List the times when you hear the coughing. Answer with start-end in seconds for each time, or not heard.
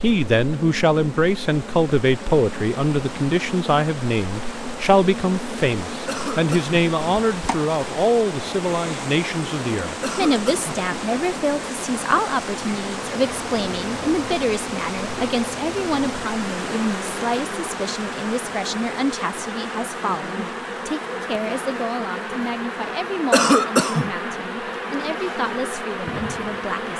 6.0-6.8, 10.0-10.7, 23.3-24.1.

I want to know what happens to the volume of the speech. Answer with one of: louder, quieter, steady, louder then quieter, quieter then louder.
quieter.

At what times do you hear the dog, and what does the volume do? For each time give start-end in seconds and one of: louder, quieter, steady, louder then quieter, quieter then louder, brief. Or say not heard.
not heard.